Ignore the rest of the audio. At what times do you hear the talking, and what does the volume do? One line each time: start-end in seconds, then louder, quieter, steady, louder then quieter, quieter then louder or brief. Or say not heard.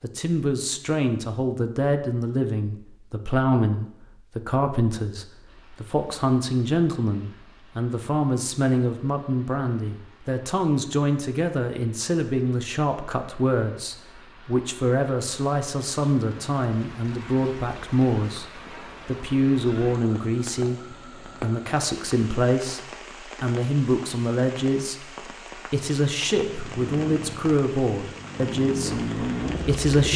0.0-30.1 steady.